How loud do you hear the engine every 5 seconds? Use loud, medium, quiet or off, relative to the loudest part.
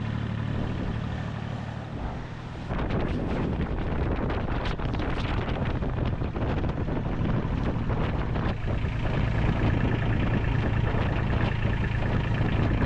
medium, loud, loud.